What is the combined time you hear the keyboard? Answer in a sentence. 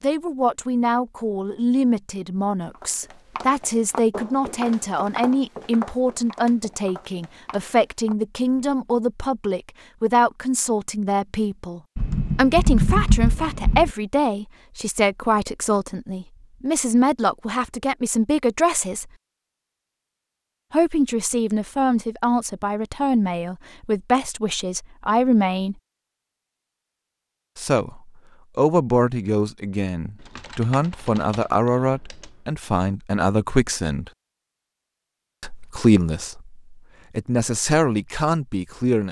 You can hear the keyboard for 4 seconds altogether.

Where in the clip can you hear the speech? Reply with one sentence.
You can hear the speech from 0.0 to 19.1 s, from 20.7 to 25.8 s, from 27.6 to 34.1 s and from 35.4 to 39.0 s.